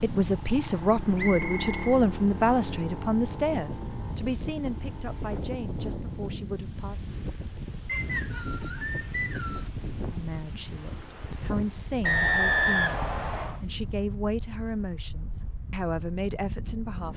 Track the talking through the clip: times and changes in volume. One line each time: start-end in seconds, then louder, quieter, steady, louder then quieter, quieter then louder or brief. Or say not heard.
0.0-7.0 quieter
10.1-17.1 steady.